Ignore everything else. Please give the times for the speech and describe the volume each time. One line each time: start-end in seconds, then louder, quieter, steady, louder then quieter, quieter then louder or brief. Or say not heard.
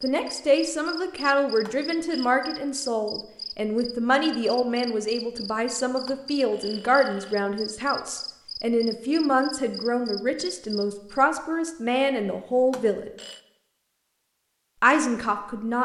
0.0-13.1 steady
14.8-15.8 brief.